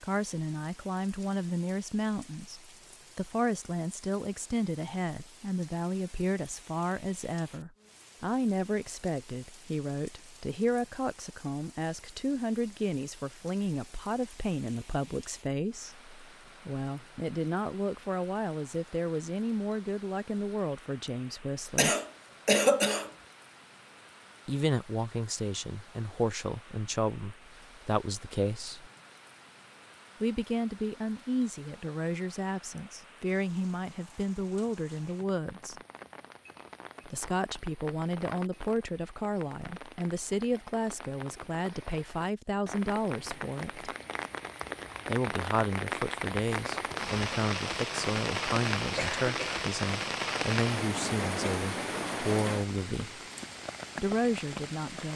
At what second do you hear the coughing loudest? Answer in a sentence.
The loudest moment of the coughing is at 23 seconds.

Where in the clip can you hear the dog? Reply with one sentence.
The dog can't be heard in this clip.